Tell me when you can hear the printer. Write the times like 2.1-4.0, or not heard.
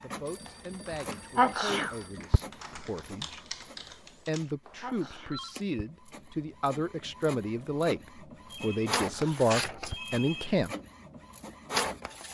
0.0-12.2.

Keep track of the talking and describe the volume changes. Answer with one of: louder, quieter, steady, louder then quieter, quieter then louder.
louder.